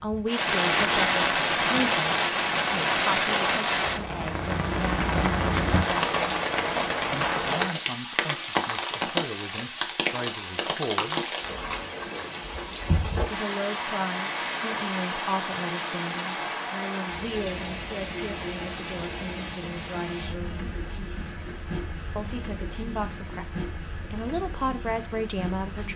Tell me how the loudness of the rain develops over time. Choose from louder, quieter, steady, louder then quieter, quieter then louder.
quieter.